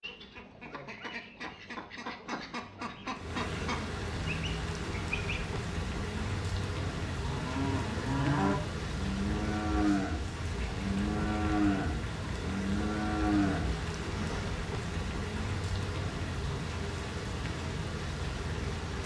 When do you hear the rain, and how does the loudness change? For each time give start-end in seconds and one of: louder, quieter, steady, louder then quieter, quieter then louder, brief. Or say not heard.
3.1-19.0 steady.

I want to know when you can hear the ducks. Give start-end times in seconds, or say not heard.
0.0-5.5.